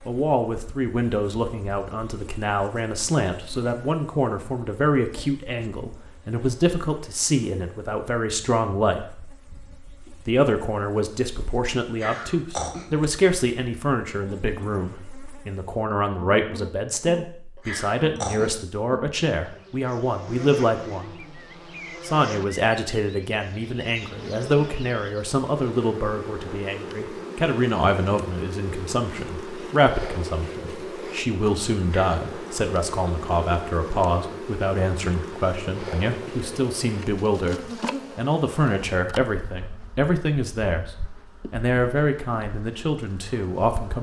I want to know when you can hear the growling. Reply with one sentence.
The growling can be heard from 11.9 to 12.8 s, from 17.6 to 18.6 s and from 31.9 to 32.5 s.